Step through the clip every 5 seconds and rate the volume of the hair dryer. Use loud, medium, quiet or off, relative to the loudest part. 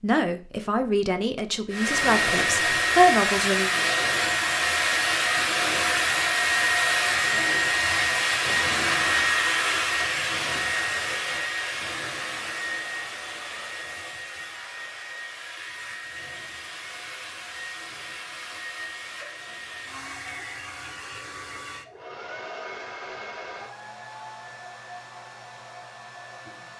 loud, loud, medium, quiet, quiet, quiet.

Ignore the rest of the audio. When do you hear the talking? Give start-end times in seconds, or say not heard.
0.0-3.7.